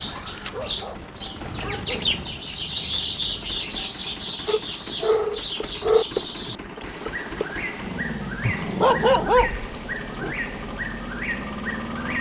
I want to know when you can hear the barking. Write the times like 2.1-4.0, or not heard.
0.1-2.1, 4.5-6.0, 8.4-10.3.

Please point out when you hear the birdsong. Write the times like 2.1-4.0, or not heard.
0.0-12.1.